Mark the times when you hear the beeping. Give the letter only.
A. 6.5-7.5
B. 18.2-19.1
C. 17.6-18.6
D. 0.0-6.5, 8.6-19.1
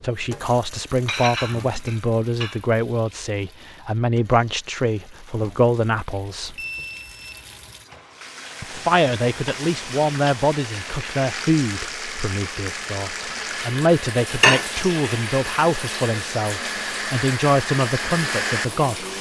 A.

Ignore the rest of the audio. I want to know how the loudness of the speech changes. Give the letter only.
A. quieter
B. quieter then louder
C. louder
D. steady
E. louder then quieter
D.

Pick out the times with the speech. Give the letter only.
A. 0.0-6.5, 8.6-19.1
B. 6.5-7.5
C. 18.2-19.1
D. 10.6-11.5
A.